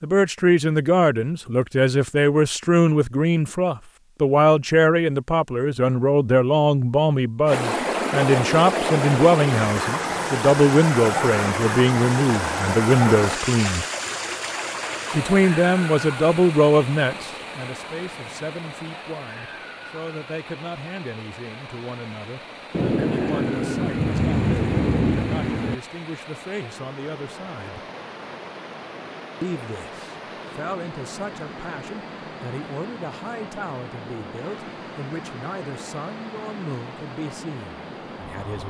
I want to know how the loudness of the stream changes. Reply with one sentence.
The volume of the stream goes down.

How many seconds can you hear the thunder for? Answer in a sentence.
You can hear the thunder for 3 seconds altogether.